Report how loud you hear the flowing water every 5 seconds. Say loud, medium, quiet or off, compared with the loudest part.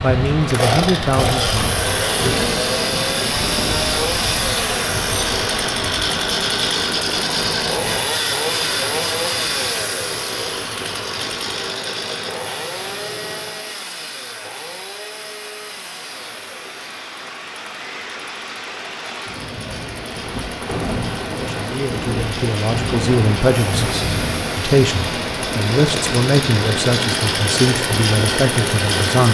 loud, loud, medium, medium, loud, loud.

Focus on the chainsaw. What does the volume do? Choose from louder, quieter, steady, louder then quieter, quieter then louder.
quieter then louder.